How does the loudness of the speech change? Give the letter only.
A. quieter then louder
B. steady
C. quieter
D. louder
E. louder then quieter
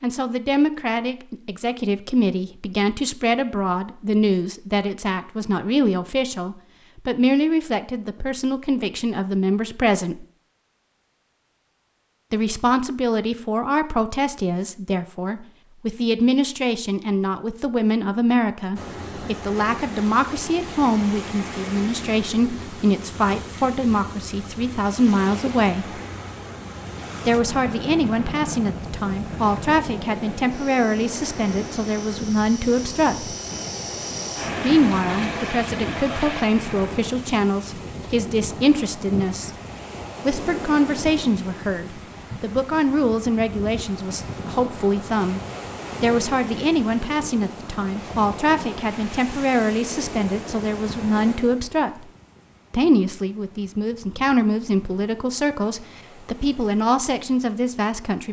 B.